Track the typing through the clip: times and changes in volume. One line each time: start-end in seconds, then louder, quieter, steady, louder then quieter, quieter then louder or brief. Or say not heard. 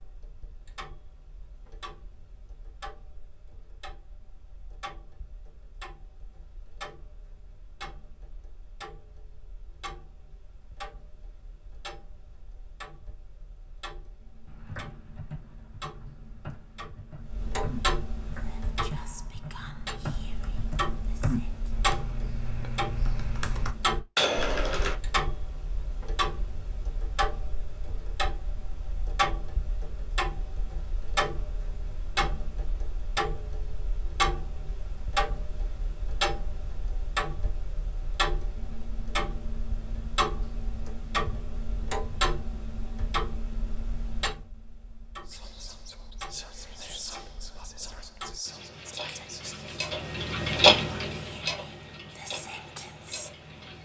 14.4-24.9 louder.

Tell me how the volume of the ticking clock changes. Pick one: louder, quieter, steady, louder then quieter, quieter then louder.
louder.